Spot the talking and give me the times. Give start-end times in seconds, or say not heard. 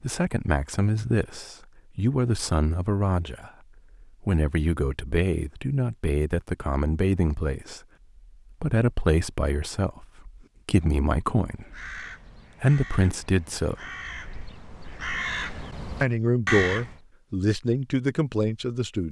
0.0-7.8, 8.5-11.9, 12.6-13.8, 16.0-19.0.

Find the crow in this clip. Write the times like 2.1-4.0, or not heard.
11.4-16.9.